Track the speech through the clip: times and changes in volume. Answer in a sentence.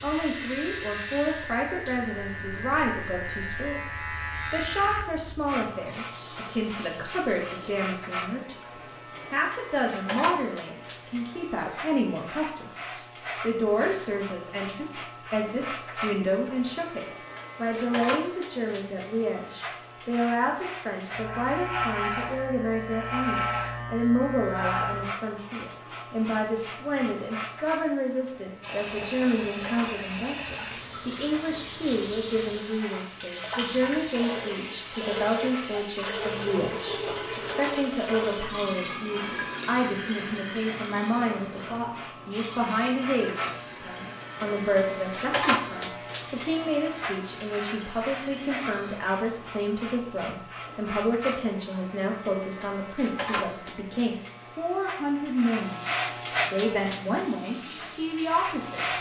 The speech can be heard from 0.0 to 58.8 s, at a steady volume.